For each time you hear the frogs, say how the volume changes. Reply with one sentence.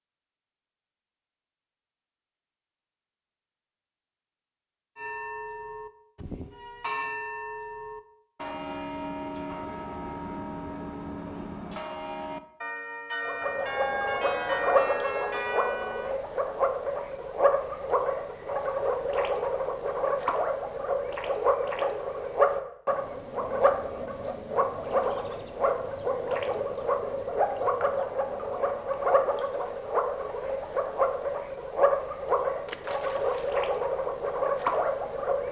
The frogs can be heard from 13.2 to 35.4 s, at a steady volume.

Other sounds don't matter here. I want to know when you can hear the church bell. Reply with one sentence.
The church bell can be heard from 5.0 to 16.1 s.